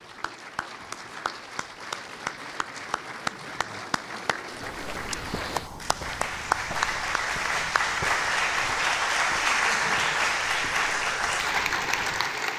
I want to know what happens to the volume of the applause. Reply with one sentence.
The volume of the applause goes up.